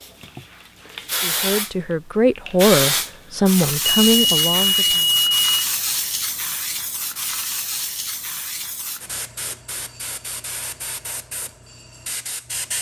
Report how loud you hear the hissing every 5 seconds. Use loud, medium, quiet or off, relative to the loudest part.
loud, loud, medium.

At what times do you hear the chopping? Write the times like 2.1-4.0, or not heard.
not heard.